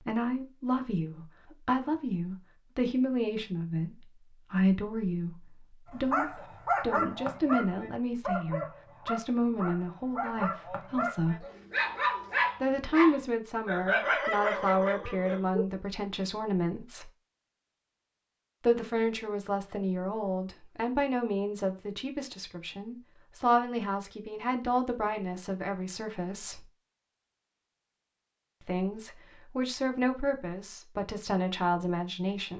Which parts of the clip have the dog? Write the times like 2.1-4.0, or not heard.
5.9-15.7.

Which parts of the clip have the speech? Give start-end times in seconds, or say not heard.
0.0-11.4, 12.6-17.1, 18.6-26.7, 28.6-32.5.